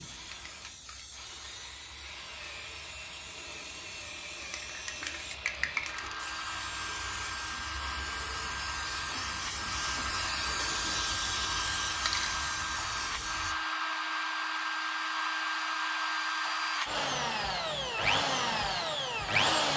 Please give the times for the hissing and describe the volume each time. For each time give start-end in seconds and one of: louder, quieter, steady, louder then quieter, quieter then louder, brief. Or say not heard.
0.0-13.6 louder.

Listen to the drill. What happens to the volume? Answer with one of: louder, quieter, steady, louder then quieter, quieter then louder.
louder.